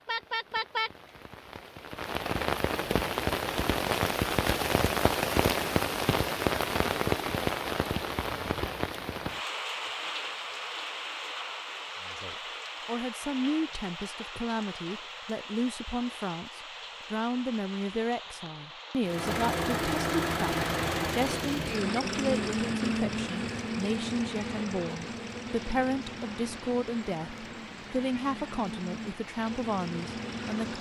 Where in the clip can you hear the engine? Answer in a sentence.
The engine can be heard from 19.0 to 30.7 s.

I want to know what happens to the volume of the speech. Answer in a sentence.
The volume of the speech stays about the same.